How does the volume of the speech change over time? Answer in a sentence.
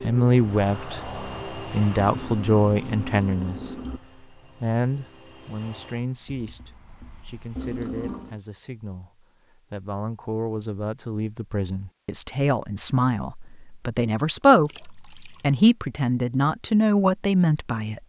The loudness of the speech goes down, then up.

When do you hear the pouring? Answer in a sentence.
The pouring can be heard from 2.0 to 4.0 s, from 7.5 to 8.3 s and from 14.7 to 15.5 s.